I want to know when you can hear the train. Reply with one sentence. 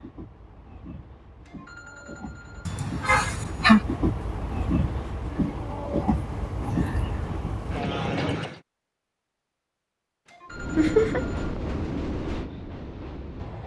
You can hear the train from 0.0 to 8.6 s and from 10.5 to 13.6 s.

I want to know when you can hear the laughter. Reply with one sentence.
You can hear the laughter from 2.6 to 3.8 s and from 10.8 to 11.2 s.